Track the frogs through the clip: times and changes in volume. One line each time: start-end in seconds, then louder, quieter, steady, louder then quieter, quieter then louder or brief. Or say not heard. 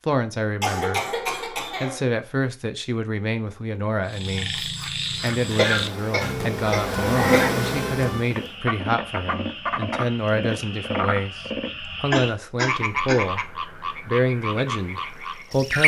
4.0-15.8 steady.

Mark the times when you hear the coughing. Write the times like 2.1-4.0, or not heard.
0.6-2.0, 5.5-7.5, 12.1-13.2.